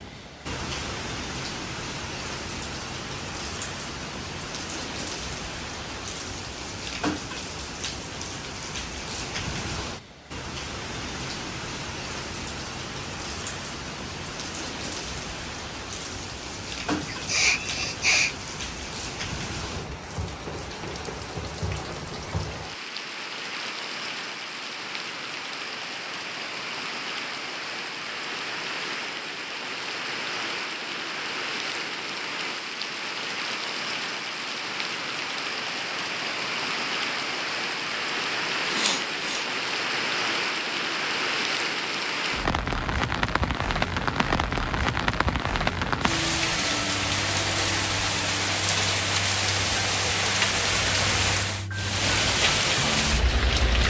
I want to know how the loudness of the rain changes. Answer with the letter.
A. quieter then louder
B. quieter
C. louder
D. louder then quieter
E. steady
C.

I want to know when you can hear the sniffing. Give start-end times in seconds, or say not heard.
17.0-18.4, 38.7-39.5.